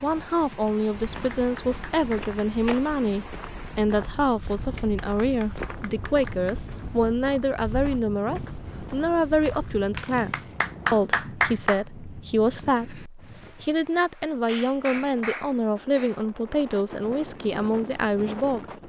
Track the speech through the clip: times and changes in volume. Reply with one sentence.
You can hear the speech from 0.0 to 18.8 s, at a steady volume.